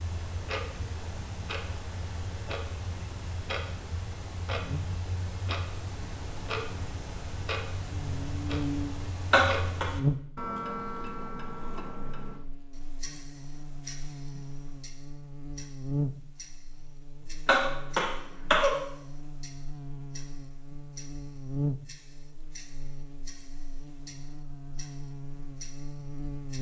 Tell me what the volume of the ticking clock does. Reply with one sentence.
The volume of the ticking clock goes down.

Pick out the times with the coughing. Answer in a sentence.
You can hear the coughing from 9.3 to 9.9 s and from 17.4 to 18.7 s.